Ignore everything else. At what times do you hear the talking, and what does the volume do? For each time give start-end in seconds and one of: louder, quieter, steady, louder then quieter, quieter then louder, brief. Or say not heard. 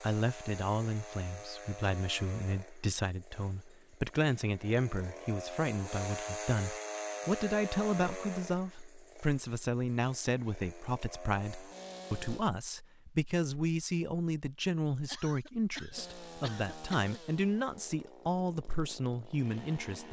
0.0-20.0 steady.